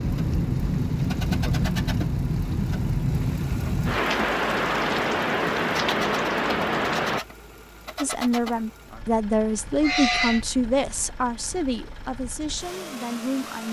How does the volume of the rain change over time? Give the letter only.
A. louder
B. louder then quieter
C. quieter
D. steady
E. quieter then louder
D.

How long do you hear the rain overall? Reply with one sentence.
The rain can be heard for 7 seconds in total.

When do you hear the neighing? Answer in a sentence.
The neighing can be heard from 9.8 to 10.4 s.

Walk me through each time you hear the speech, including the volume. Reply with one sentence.
The speech can be heard from 8.0 to 13.6 s, getting quieter.